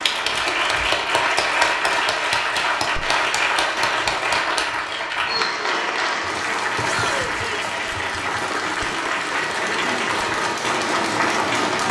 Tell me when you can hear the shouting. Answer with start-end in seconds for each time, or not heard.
6.8-7.7.